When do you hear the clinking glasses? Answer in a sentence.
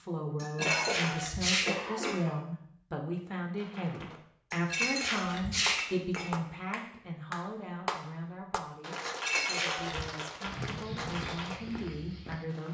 The clinking glasses can be heard from 0.4 to 2.2 s, from 4.5 to 6.3 s and from 9.1 to 10.1 s.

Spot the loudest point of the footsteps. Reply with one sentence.
The loudest moment of the footsteps is at 11 seconds.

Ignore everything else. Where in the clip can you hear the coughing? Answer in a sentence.
The coughing can be heard from 0.4 to 2.4 s.